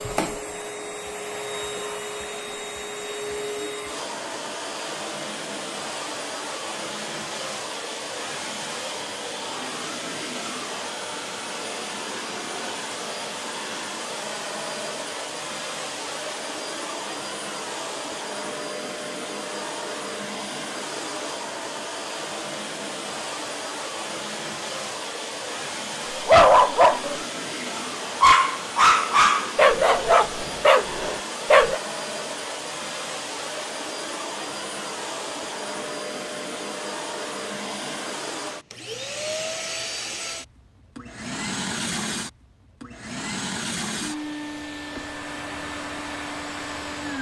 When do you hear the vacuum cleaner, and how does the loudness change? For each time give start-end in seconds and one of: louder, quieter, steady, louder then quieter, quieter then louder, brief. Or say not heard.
0.0-47.1 steady.